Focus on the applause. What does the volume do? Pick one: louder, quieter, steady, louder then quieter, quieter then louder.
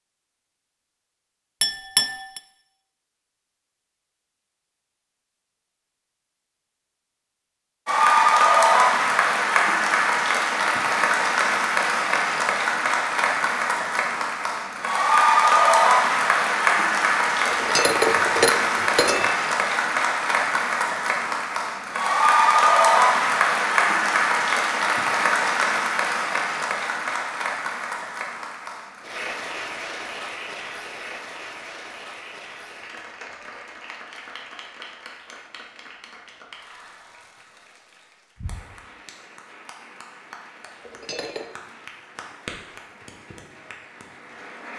quieter.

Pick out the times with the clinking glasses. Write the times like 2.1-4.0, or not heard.
1.6-2.4, 17.5-19.4, 40.8-41.5.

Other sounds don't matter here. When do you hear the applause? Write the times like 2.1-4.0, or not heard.
7.8-44.7.